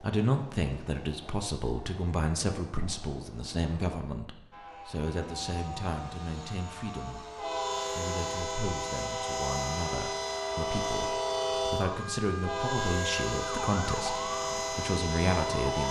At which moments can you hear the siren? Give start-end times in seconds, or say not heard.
4.5-15.8.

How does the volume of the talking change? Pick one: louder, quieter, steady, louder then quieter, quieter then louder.
quieter then louder.